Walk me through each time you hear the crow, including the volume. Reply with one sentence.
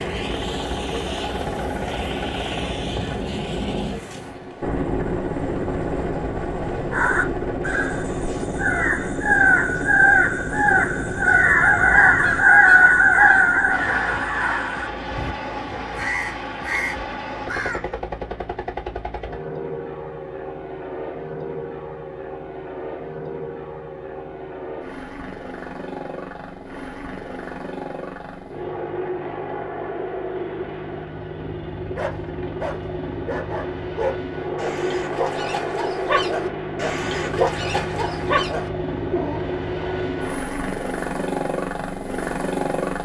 The crow can be heard from 6.9 to 18.0 s, getting louder then quieter.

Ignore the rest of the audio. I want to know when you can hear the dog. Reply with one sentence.
The dog can be heard from 31.9 to 39.4 s.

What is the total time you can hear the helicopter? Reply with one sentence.
The helicopter can be heard for 43 seconds in total.